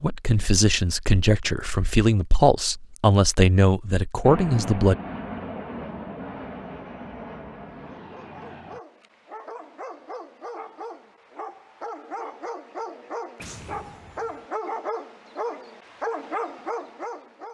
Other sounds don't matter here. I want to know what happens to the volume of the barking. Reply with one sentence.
The loudness of the barking goes up.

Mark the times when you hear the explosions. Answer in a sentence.
You can hear the explosions from 13.3 to 14.4 s.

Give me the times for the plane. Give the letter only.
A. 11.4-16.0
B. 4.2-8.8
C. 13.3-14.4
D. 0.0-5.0
B.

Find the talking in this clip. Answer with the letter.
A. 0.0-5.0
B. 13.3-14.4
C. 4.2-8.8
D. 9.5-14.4
A.